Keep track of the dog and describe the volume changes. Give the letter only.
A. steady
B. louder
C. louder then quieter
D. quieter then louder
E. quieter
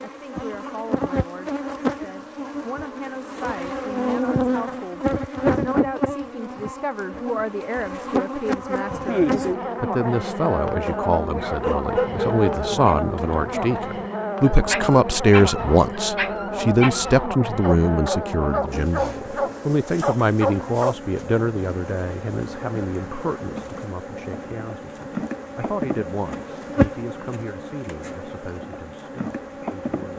D.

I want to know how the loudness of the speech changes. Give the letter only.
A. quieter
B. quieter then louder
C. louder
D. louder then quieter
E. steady
D.